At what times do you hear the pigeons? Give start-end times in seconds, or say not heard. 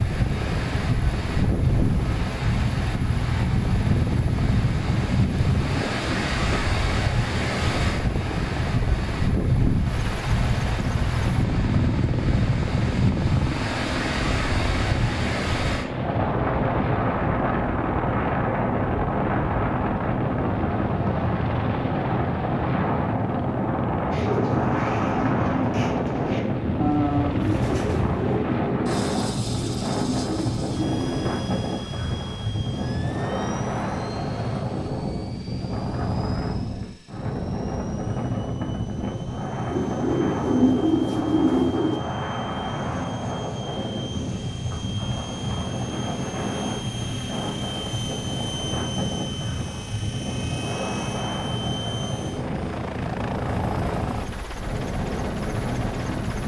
24.1-31.4, 39.7-42.0.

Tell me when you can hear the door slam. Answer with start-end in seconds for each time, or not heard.
not heard.